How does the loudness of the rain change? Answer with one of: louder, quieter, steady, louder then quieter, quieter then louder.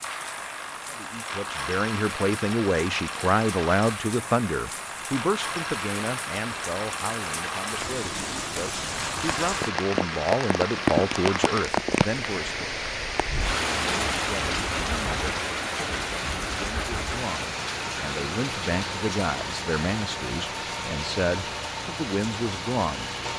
louder then quieter.